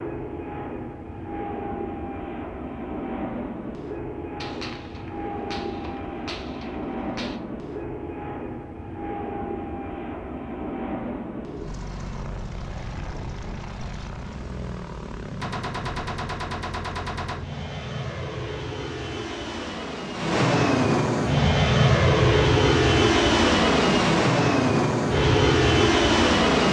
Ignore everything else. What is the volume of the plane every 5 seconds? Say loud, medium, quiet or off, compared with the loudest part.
quiet, quiet, quiet, quiet, loud, loud.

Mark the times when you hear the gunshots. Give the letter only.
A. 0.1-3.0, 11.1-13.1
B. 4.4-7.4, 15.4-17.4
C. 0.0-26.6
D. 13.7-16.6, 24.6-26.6
B.